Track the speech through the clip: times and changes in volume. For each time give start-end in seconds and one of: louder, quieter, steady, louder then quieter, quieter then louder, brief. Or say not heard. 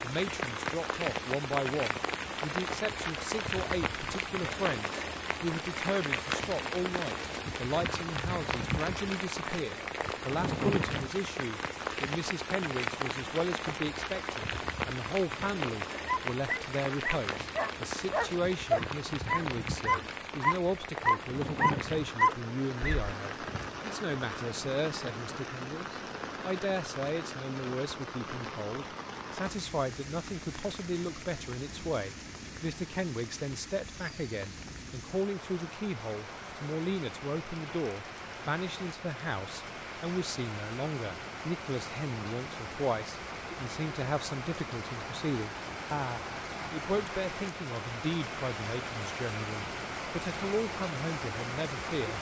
0.0-52.1 steady.